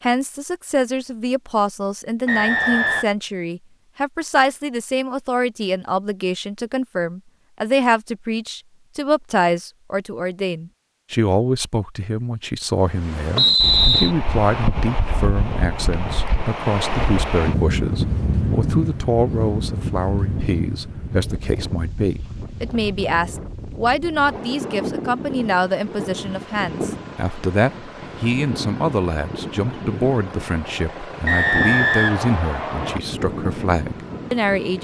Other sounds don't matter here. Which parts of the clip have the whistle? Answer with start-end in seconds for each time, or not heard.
2.2-3.0, 13.3-14.1, 31.2-33.0.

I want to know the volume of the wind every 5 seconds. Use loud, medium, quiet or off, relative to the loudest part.
off, off, loud, loud, medium, medium, medium.